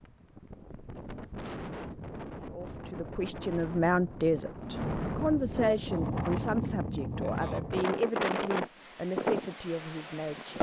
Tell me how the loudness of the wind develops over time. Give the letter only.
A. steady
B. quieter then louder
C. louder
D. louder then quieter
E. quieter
C.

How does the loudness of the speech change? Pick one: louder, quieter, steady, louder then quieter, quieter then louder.
quieter.